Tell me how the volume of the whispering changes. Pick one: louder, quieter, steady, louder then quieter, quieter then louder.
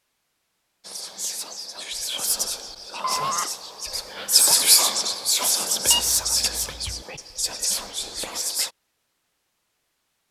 louder then quieter.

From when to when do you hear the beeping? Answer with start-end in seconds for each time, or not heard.
3.0-3.5, 5.8-7.0.